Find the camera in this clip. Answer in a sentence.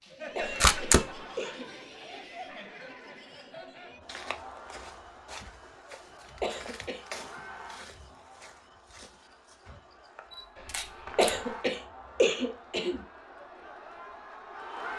The camera can be heard from 0.4 to 1.1 s and from 10.3 to 11.4 s.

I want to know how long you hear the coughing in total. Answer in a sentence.
The coughing can be heard for 4 seconds in total.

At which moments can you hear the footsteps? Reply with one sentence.
You can hear the footsteps from 4.0 to 11.3 s.